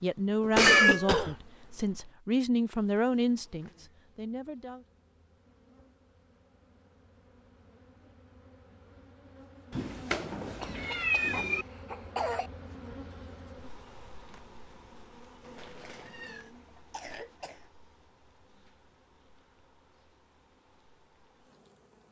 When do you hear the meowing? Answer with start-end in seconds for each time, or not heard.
0.4-1.1, 9.7-11.7, 15.4-16.5.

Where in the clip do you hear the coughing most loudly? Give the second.
1 s.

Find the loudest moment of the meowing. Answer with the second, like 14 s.
1 s.